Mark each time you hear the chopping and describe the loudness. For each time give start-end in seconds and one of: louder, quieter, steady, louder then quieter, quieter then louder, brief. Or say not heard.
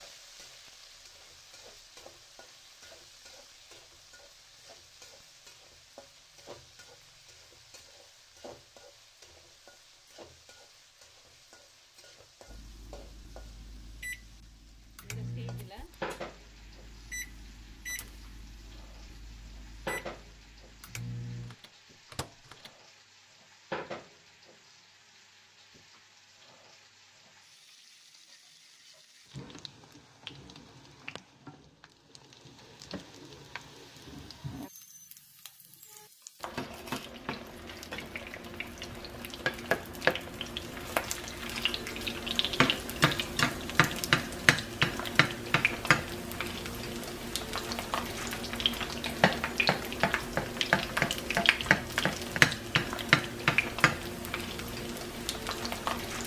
not heard.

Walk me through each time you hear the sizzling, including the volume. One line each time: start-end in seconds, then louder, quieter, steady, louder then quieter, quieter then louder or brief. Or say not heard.
0.0-56.2 louder.